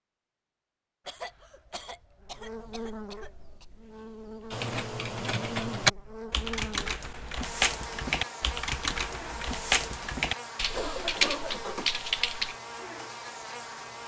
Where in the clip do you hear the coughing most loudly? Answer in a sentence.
The volume of the coughing peaks at 11 seconds.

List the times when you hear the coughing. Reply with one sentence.
The coughing can be heard from 1.1 to 3.6 s and from 10.7 to 11.9 s.